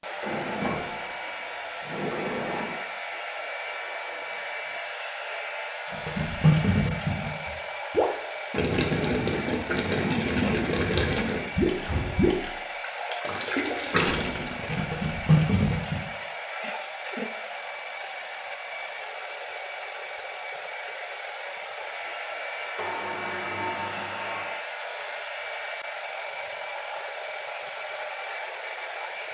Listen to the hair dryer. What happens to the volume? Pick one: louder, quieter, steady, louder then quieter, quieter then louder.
steady.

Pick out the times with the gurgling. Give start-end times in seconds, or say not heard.
5.9-16.1.